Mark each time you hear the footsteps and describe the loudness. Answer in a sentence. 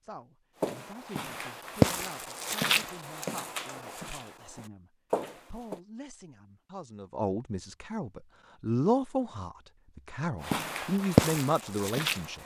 You can hear the footsteps from 0.6 to 5.8 s, getting quieter then louder; and briefly from 10.4 to 12.4 s.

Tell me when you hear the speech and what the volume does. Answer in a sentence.
You can hear the speech from 0.0 to 12.4 s, getting louder.